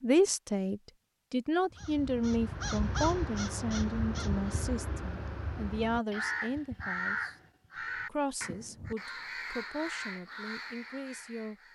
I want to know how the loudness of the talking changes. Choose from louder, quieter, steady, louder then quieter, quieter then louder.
quieter.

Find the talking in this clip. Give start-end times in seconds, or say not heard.
0.0-7.3, 8.1-11.6.